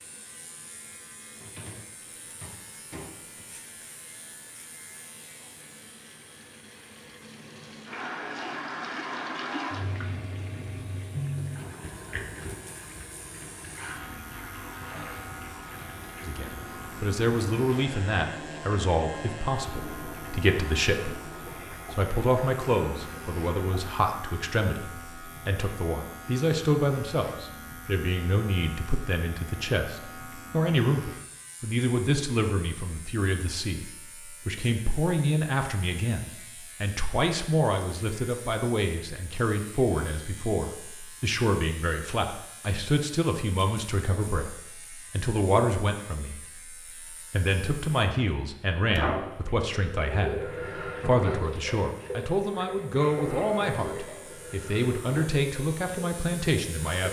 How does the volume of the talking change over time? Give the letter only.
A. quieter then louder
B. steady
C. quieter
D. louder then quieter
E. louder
B.